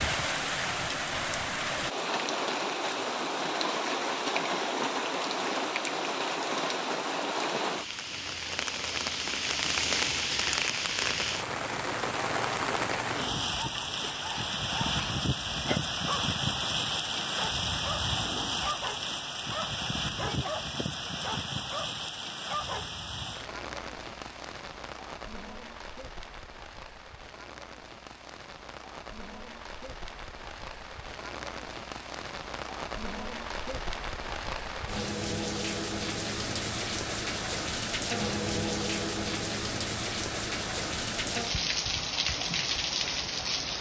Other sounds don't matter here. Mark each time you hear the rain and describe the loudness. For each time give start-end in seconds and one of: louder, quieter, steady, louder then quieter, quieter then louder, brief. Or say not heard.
0.0-43.7 quieter then louder.